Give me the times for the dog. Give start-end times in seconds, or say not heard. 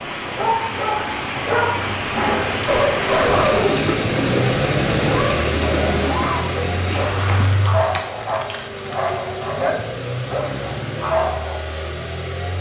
0.3-11.6.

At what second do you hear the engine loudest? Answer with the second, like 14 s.
5 s.